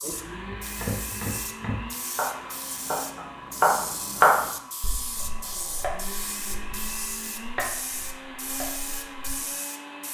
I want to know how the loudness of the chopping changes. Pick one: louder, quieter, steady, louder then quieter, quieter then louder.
louder then quieter.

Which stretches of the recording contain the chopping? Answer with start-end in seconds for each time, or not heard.
0.0-9.4.